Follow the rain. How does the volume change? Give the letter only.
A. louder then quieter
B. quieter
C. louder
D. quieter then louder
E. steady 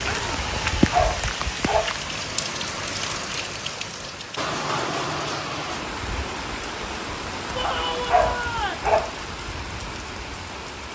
B.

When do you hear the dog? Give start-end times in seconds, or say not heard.
0.9-2.0, 8.1-9.2.